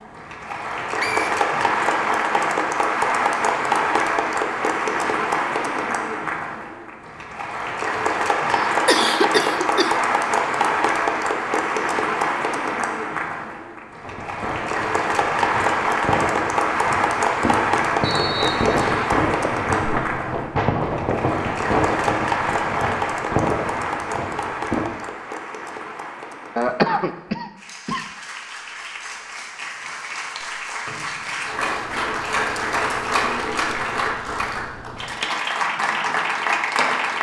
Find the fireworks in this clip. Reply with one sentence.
The fireworks can be heard from 14.0 to 24.9 s.